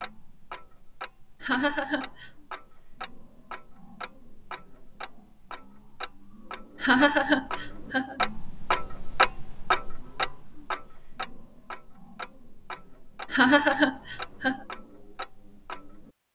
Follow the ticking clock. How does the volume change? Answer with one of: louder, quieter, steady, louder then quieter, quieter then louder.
louder then quieter.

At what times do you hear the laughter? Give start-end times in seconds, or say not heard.
1.4-2.3, 6.8-8.2, 13.3-14.6.